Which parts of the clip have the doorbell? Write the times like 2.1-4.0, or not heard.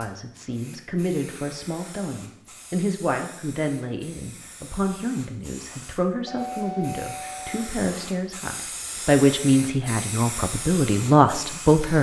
6.2-7.6.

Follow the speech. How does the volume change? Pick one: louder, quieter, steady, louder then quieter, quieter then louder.
louder.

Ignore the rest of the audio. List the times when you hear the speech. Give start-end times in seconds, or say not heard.
0.0-11.9.